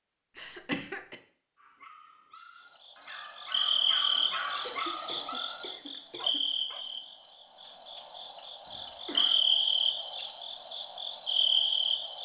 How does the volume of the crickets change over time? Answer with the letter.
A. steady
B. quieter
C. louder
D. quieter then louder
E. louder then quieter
D.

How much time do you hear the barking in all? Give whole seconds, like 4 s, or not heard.
5 s.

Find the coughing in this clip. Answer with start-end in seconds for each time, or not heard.
0.3-1.1, 4.6-6.5, 8.7-9.4.